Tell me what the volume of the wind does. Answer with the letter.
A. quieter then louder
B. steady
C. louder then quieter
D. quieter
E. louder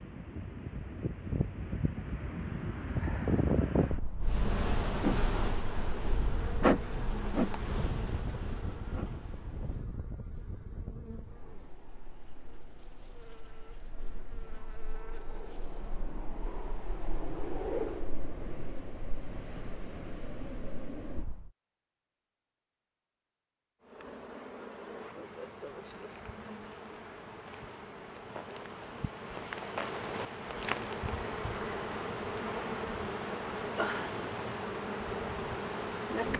A.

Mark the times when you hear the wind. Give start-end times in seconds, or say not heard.
0.0-21.5.